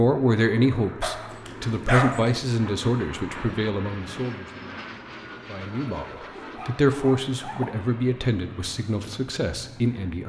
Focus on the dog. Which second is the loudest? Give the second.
2 s.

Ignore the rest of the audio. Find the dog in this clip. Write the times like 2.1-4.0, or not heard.
1.0-2.4, 5.7-7.7.